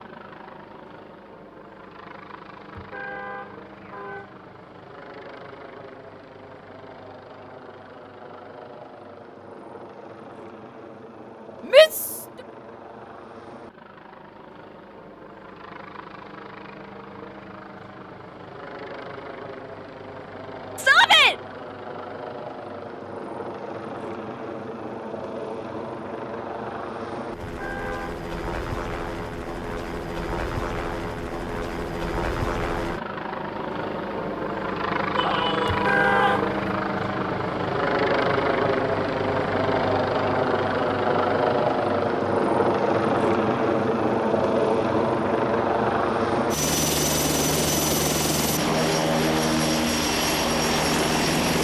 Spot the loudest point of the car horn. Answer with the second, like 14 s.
36 s.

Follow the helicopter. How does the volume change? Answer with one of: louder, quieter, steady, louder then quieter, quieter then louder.
louder.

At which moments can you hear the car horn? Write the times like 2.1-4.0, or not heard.
2.7-4.3, 27.5-28.2, 35.6-36.5.